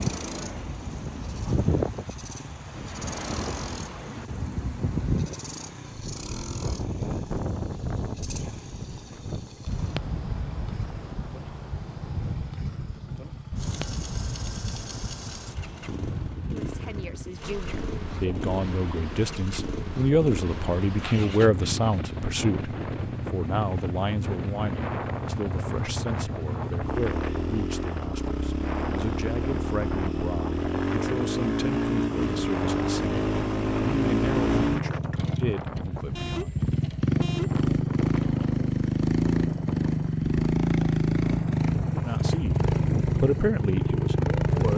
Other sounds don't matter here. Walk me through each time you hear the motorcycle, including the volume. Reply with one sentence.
The motorcycle can be heard from 0.0 to 44.7 s, getting louder.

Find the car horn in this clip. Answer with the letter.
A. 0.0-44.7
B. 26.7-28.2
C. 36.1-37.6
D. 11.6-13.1
C.